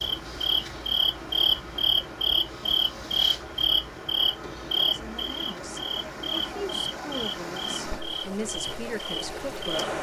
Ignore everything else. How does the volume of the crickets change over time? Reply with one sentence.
The loudness of the crickets goes down.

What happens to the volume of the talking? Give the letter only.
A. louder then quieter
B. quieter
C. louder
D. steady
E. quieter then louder
C.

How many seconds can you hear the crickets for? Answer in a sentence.
You can hear the crickets for 10 seconds altogether.